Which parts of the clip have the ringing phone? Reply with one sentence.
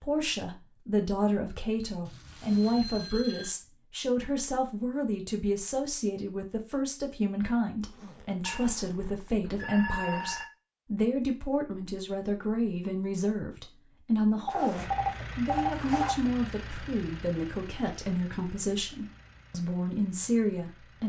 You can hear the ringing phone from 2.5 to 3.5 s, from 8.4 to 10.4 s and from 14.4 to 16.1 s.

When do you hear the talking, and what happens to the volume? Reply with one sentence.
The talking can be heard from 0.0 to 21.0 s, at a steady volume.